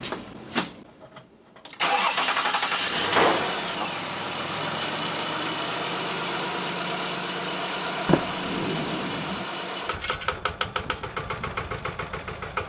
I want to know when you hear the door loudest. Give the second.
3 s.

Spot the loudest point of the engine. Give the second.
2 s.